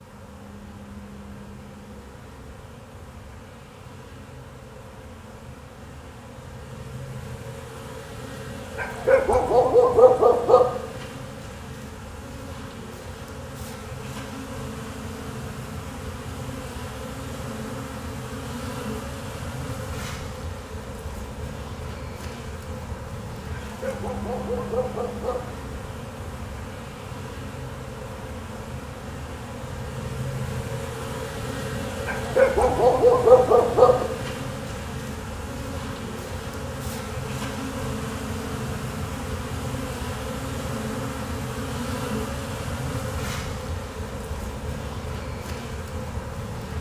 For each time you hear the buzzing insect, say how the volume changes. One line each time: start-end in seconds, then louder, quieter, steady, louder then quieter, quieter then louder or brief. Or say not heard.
0.0-46.7 louder.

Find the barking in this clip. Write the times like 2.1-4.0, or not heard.
8.8-10.7, 23.7-25.5, 32.0-34.0.